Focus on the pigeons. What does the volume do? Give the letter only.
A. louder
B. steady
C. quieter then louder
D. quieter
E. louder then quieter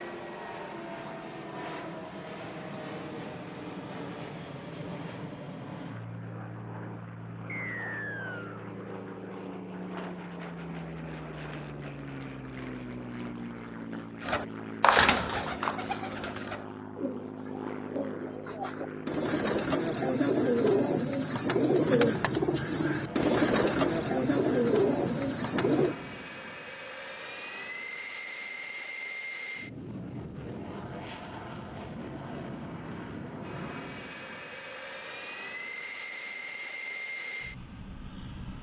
C.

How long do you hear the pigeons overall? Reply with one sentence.
You can hear the pigeons for 12 seconds altogether.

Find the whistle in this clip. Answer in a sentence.
The whistle can be heard from 7.5 to 8.6 s.